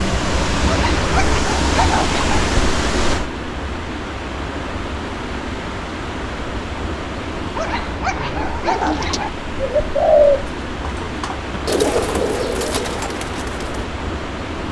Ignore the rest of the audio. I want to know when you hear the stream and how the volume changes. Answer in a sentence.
The stream can be heard from 0.0 to 14.6 s, getting quieter.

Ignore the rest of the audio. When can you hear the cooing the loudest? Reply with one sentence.
The loudest moment of the cooing is at 10 seconds.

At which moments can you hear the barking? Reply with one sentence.
The barking can be heard from 0.7 to 2.4 s and from 7.5 to 9.3 s.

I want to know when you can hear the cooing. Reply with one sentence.
You can hear the cooing from 8.2 to 13.8 s.